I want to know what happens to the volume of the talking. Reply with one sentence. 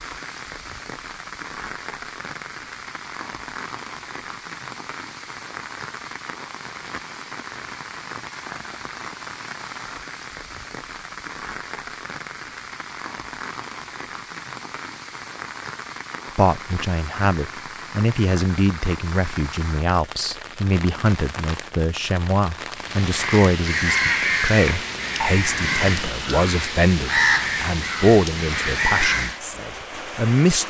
The loudness of the talking stays about the same.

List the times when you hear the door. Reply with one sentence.
You can't hear the door here.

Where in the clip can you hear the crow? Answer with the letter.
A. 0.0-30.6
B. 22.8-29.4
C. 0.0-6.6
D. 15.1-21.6
B.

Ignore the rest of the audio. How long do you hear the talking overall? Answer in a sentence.
The talking can be heard for 14 seconds in total.